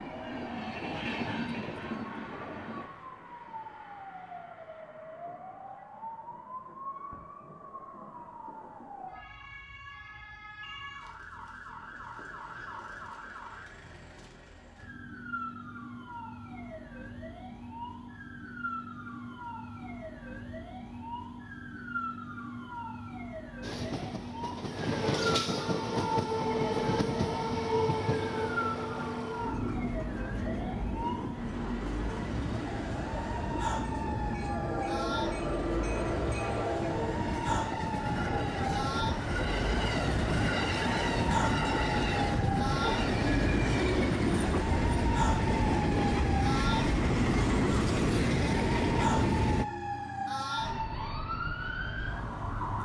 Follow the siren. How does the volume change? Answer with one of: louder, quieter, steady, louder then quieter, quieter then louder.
louder.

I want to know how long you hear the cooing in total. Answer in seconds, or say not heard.
not heard.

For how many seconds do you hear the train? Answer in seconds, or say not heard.
29 s.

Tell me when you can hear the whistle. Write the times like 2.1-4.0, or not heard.
not heard.